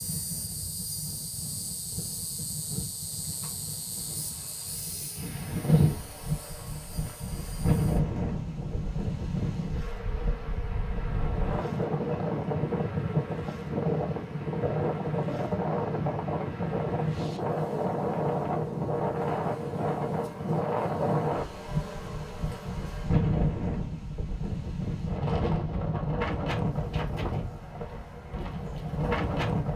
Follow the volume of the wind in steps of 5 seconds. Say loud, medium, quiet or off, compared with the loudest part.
quiet, loud, loud, loud, loud, loud.